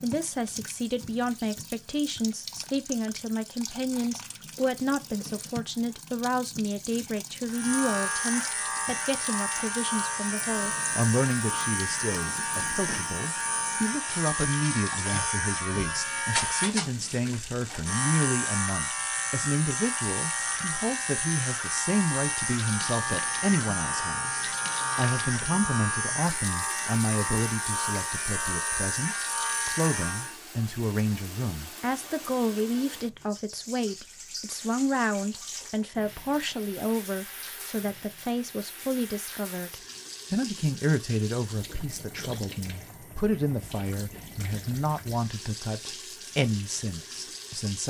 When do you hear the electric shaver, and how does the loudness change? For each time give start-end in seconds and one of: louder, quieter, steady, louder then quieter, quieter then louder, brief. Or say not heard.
7.5-30.4 steady.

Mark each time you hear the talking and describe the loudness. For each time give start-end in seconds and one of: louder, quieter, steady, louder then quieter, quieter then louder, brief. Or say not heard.
0.0-47.8 steady.